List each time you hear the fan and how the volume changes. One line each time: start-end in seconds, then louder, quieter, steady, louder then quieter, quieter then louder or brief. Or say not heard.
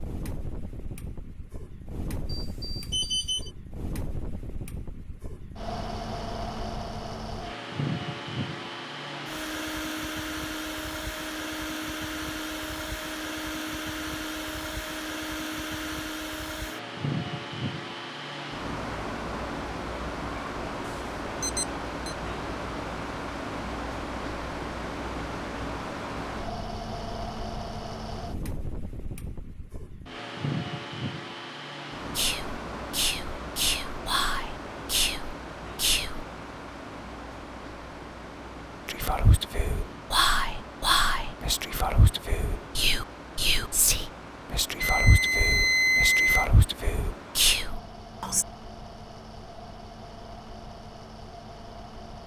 0.0-52.2 quieter.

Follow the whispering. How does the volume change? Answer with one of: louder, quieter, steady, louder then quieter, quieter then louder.
steady.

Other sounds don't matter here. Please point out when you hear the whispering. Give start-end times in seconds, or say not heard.
32.1-36.2, 38.9-48.5.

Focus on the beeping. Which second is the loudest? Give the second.
46 s.